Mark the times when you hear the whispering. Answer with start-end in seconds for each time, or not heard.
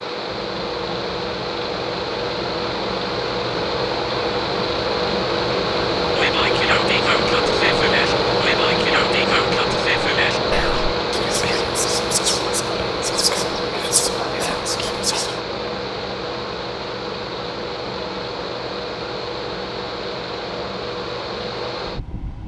6.2-15.4.